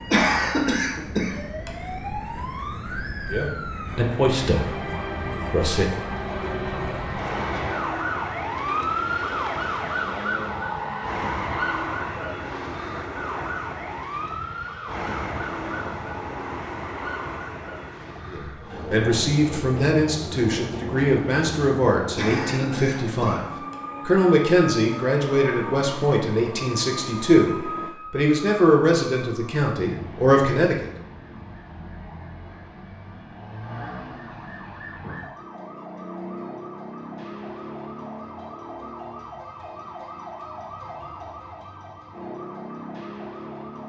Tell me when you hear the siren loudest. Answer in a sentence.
The loudest moment of the siren is at 9 seconds.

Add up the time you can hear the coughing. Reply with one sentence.
The coughing can be heard for 3 seconds in total.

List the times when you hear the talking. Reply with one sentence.
The talking can be heard from 3.3 to 5.8 s, from 18.3 to 23.4 s and from 24.1 to 30.9 s.